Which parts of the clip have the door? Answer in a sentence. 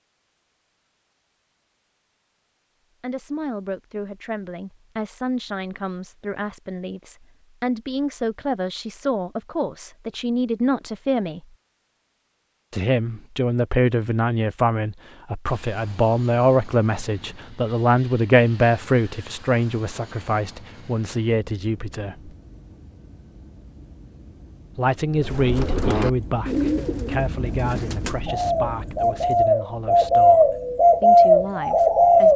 The door can't be heard in this clip.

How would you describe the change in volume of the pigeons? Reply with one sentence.
The volume of the pigeons goes down, then up.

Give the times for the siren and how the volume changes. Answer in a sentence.
You can't hear the siren here.